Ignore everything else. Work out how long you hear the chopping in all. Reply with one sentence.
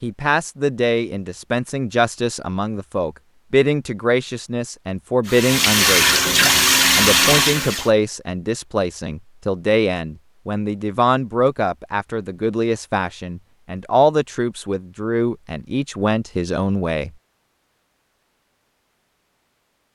The chopping can't be heard in this clip.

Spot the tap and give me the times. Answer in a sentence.
You can hear the tap from 5.2 to 7.9 s.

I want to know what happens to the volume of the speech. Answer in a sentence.
The volume of the speech stays about the same.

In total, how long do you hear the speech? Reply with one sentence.
The speech can be heard for 17 seconds in total.